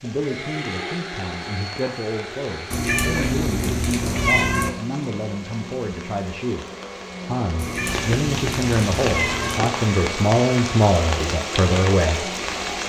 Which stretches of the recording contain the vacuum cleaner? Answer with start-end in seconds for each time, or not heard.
0.0-12.8.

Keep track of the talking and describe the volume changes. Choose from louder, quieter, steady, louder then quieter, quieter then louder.
louder.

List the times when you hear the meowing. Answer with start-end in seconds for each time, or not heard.
2.7-4.7, 7.5-9.6.